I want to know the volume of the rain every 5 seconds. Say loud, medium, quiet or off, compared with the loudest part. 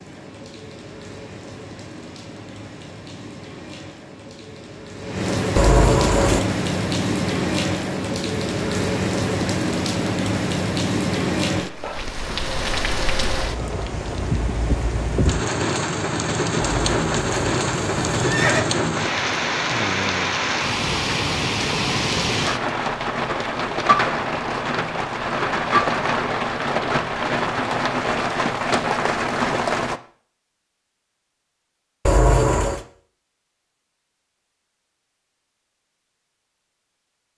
quiet, loud, loud, loud, loud, loud, off, off.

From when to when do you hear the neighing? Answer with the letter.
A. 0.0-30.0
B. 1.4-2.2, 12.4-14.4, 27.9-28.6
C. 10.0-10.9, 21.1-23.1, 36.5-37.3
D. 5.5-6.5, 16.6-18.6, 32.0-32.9
D.